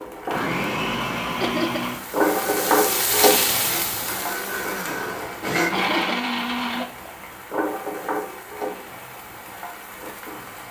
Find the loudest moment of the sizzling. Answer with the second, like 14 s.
3 s.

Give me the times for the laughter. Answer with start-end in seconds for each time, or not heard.
1.4-1.9, 5.7-6.2.